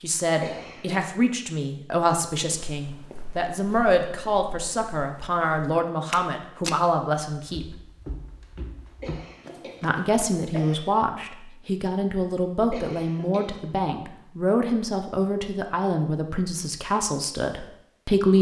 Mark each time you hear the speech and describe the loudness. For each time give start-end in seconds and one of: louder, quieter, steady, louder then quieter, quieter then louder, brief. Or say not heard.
0.0-7.8 steady
9.8-18.3 steady.